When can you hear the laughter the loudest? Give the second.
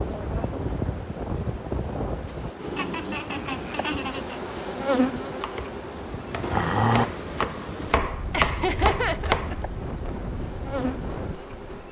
9 s.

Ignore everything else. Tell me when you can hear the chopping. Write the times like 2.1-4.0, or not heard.
5.4-9.6.